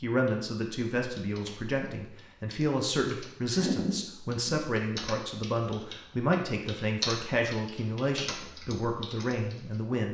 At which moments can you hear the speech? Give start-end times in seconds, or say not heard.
0.0-10.0.